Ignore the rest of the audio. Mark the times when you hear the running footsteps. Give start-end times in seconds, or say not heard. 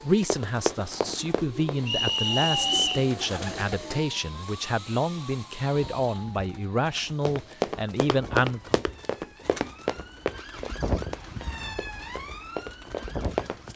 0.2-3.2, 7.2-13.7.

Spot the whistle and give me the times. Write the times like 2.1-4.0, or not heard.
1.9-3.0.